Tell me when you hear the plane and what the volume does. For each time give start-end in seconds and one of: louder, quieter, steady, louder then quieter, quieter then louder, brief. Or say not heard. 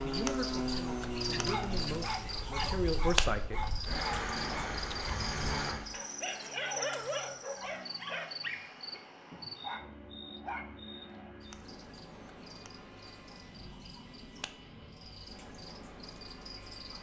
0.0-16.9 quieter.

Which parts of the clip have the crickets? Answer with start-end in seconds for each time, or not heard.
0.0-16.9.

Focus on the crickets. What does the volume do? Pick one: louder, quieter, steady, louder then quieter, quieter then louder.
quieter.